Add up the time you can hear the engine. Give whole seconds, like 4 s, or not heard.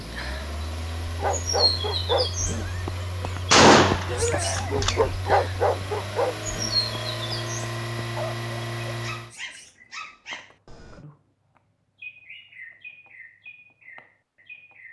9 s.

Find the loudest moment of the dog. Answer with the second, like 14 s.
5 s.